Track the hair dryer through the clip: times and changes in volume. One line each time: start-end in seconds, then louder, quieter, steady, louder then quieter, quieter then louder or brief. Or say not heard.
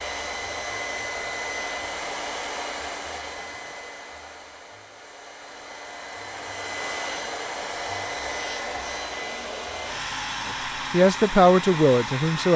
0.0-12.5 quieter then louder.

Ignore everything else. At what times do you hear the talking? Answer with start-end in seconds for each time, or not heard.
10.4-12.5.